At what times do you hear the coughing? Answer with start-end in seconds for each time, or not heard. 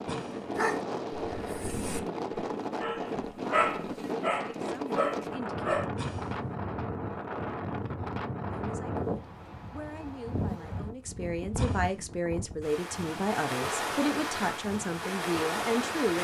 0.1-0.6, 6.0-6.4, 11.6-12.2.